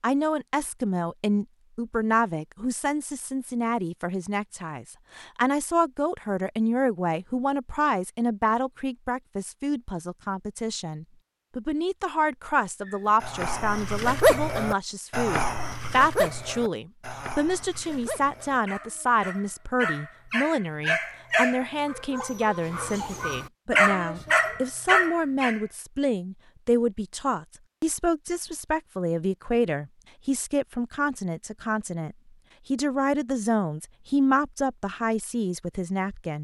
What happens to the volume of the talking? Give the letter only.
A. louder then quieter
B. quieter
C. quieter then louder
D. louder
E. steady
E.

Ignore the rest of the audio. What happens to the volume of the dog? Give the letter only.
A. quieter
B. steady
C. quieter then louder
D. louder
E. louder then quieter
C.